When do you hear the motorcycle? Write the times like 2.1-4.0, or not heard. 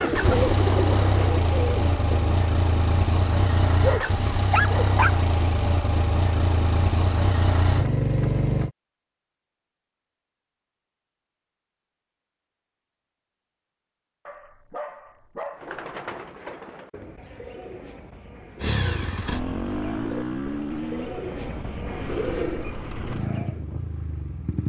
0.0-8.7, 18.6-24.6.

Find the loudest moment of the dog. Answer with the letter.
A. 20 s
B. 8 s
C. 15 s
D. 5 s
D.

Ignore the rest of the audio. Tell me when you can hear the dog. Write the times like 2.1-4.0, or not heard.
3.8-5.2, 14.2-15.8.